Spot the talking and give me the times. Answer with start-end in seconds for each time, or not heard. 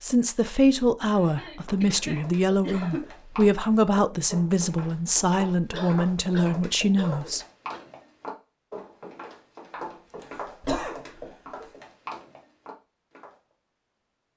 0.0-7.4.